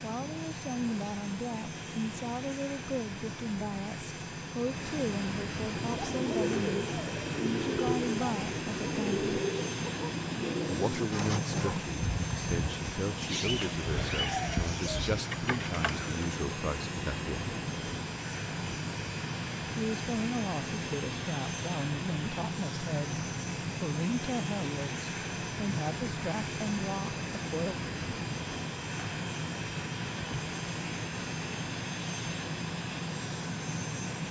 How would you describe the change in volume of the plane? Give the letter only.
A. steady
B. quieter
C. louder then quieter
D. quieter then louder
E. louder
A.